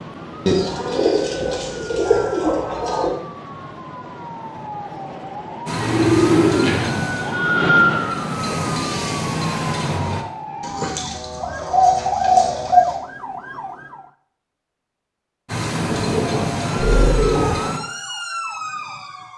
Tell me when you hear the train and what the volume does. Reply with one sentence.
The train can be heard from 5.7 to 10.2 s, getting quieter then louder; and briefly from 15.4 to 17.8 s.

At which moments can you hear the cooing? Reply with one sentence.
You can hear the cooing from 0.5 to 3.1 s, from 5.8 to 6.8 s, from 10.6 to 12.9 s and from 15.9 to 17.8 s.